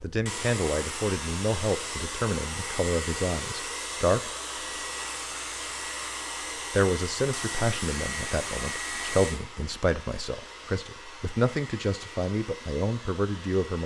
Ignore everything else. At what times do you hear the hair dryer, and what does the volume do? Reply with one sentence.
You can hear the hair dryer from 0.0 to 13.8 s, getting quieter.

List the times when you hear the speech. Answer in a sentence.
The speech can be heard from 0.0 to 4.3 s and from 6.7 to 13.8 s.